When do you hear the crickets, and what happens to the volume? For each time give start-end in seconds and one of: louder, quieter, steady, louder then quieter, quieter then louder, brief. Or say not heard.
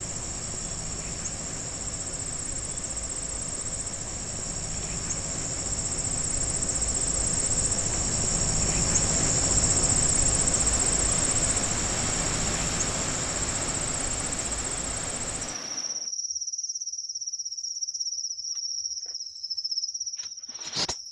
0.0-21.0 louder then quieter.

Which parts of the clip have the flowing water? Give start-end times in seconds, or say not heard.
0.0-16.1.